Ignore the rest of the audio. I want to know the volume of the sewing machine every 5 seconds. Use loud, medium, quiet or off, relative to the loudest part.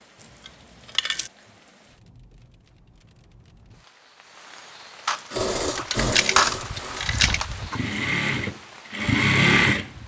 off, loud.